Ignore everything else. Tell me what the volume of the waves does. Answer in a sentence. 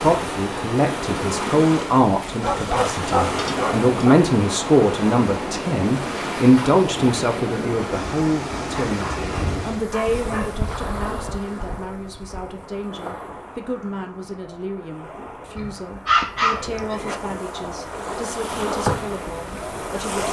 The volume of the waves goes down, then up.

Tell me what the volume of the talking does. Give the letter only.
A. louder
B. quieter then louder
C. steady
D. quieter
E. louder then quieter
D.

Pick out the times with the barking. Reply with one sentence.
The barking can be heard from 2.4 to 4.2 s, from 8.8 to 10.5 s and from 15.6 to 17.2 s.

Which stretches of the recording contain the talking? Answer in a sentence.
You can hear the talking from 0.0 to 20.2 s.